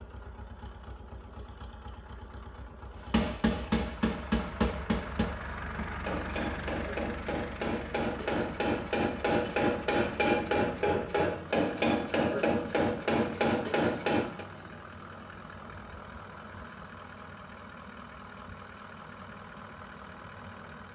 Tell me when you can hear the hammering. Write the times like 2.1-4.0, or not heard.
3.0-14.4.